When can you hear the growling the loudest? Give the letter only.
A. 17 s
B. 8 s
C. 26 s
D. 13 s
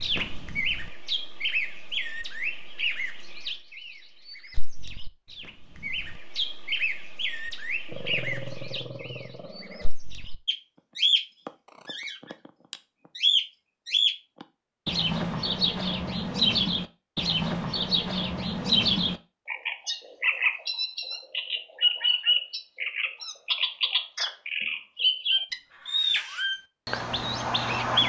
B.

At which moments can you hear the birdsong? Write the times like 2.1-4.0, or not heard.
0.0-28.0.